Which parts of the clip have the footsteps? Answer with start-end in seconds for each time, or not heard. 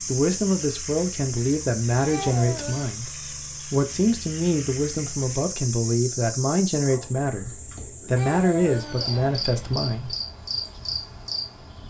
not heard.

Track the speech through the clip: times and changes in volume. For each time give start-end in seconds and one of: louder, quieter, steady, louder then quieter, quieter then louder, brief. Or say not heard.
0.1-10.2 steady.